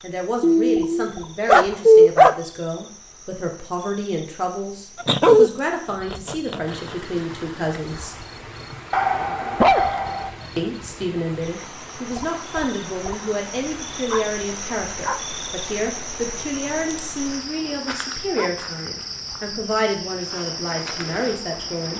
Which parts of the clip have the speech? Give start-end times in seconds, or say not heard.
0.0-8.2, 10.6-21.9.